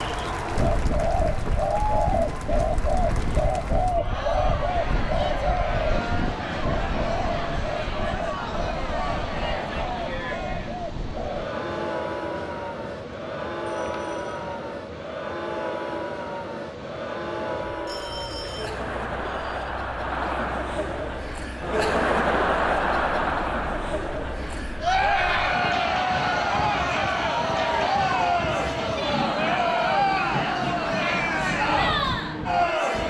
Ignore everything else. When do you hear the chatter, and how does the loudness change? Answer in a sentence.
The chatter can be heard from 0.0 to 33.0 s, getting louder.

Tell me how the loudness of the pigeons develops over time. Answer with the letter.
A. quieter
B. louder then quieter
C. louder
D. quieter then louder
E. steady
A.